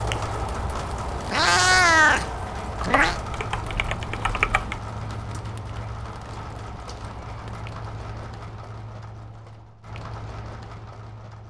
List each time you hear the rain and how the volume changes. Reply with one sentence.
The rain can be heard from 0.0 to 11.4 s, getting quieter.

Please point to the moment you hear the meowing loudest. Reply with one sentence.
The loudest moment of the meowing is at 2 seconds.